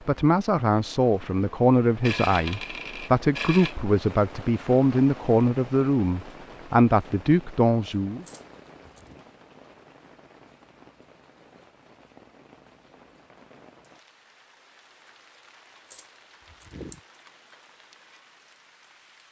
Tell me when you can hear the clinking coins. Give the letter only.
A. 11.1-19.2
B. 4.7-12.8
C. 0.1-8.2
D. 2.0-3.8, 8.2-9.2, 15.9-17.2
D.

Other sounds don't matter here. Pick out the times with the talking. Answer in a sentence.
You can hear the talking from 0.1 to 8.2 s.